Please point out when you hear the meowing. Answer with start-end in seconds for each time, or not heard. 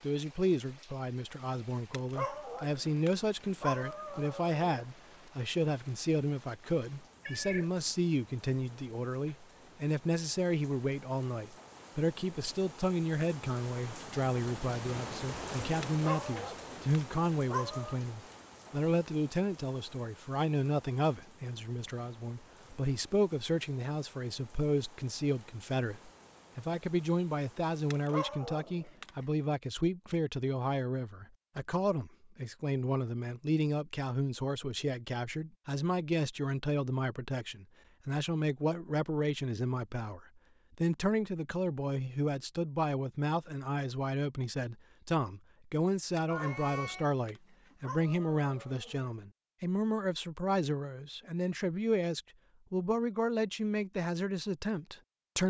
7.2-7.7, 46.3-47.0.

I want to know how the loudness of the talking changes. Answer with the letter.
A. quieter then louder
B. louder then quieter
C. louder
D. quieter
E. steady
E.